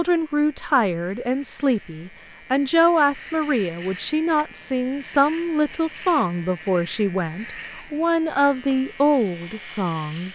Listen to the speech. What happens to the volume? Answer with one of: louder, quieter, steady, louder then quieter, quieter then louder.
steady.